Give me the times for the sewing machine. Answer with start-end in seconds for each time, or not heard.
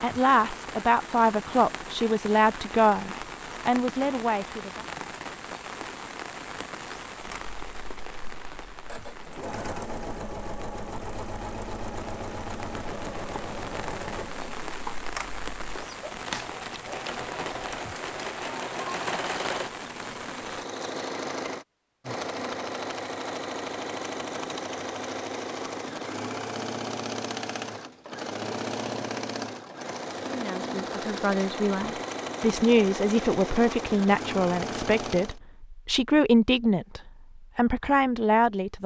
7.2-35.4.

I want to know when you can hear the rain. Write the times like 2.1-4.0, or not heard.
0.0-20.6.